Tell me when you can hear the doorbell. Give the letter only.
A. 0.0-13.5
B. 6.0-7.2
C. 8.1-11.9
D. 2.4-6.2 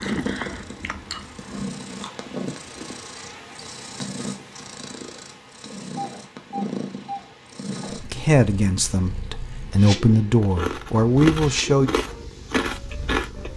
B.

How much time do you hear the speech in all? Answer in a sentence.
You can hear the speech for 4 seconds altogether.